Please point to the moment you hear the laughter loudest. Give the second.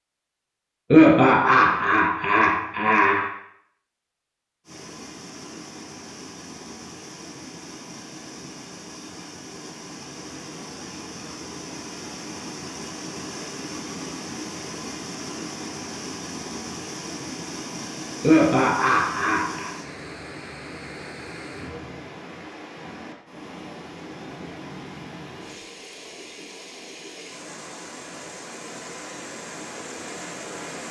1 s.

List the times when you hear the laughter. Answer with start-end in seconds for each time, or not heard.
0.9-3.2, 18.2-19.7.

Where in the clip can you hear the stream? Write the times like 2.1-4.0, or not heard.
4.7-30.8.